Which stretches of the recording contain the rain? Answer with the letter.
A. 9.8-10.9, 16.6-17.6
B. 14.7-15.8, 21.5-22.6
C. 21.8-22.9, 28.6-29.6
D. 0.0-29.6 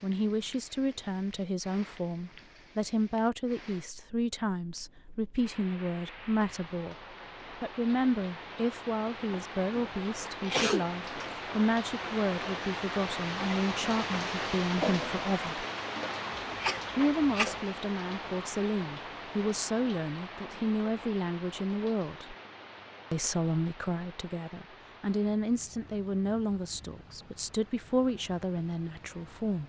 D.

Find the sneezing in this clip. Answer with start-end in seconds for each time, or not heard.
9.8-10.9, 16.6-17.6.